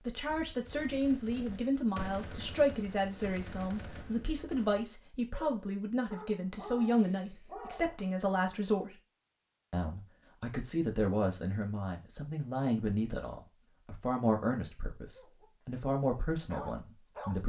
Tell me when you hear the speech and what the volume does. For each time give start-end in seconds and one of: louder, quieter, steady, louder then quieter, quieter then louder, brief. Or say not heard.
0.1-9.0 steady
9.7-17.4 steady.